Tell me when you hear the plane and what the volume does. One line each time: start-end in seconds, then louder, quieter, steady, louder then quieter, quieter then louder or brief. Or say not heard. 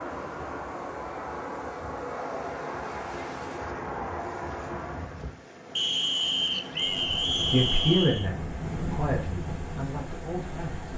0.0-5.3 steady.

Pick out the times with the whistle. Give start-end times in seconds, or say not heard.
5.8-8.3.